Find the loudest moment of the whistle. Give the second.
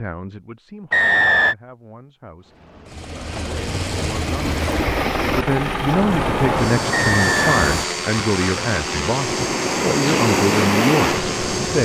1 s.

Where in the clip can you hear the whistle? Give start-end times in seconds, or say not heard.
0.9-1.6, 6.9-7.6.